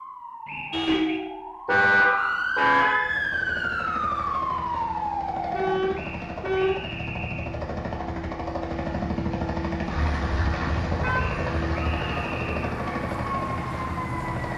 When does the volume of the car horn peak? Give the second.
2 s.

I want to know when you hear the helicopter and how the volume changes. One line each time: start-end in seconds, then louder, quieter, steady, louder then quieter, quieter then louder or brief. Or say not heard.
2.9-14.5 louder.